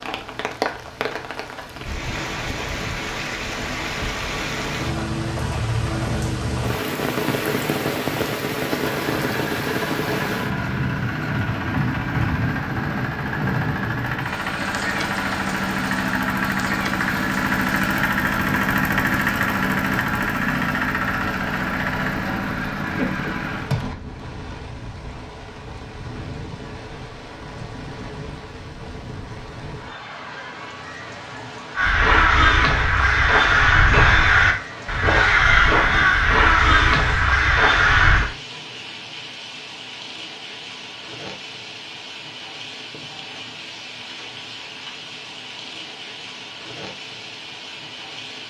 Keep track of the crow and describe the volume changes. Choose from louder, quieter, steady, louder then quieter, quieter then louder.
steady.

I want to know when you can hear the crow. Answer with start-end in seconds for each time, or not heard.
31.8-38.2.